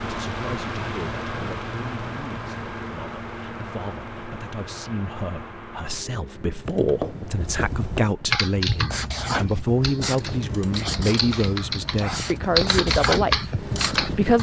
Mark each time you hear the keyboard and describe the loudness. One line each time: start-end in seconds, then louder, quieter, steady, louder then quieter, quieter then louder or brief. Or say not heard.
7.3-14.3 quieter then louder.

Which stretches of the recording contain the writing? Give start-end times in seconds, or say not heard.
6.7-14.2.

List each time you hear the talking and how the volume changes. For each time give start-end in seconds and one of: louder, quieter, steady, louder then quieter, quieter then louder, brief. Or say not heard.
0.0-14.3 louder.